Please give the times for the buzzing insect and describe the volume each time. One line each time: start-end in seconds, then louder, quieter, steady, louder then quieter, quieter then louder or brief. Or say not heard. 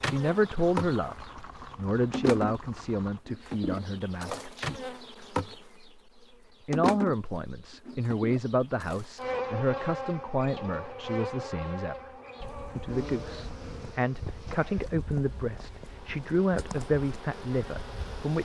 0.0-18.4 quieter.